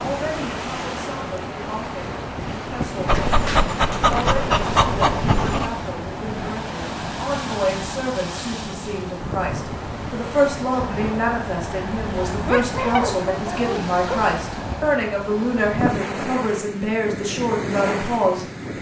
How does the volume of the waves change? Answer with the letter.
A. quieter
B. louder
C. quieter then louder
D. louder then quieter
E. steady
E.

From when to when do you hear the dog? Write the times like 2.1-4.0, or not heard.
3.0-5.7, 12.4-14.2.